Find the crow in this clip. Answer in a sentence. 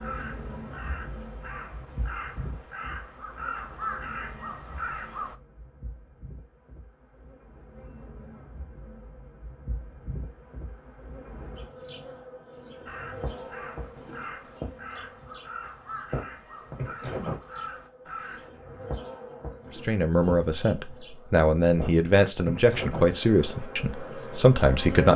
You can hear the crow from 0.0 to 5.3 s and from 12.8 to 18.5 s.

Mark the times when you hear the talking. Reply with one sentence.
You can hear the talking from 19.7 to 25.1 s.